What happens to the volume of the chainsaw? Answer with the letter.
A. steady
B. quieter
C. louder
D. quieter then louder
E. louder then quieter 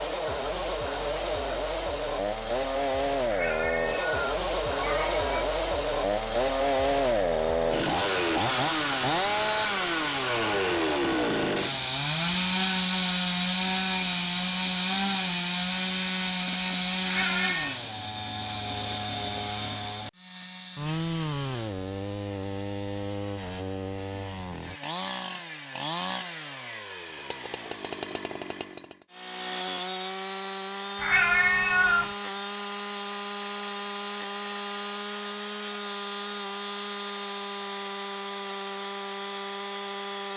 B.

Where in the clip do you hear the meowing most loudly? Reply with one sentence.
The volume of the meowing peaks at 31 seconds.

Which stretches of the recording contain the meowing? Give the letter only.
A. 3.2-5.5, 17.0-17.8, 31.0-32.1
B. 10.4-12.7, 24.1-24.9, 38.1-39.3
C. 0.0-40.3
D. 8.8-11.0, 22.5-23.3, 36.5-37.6
A.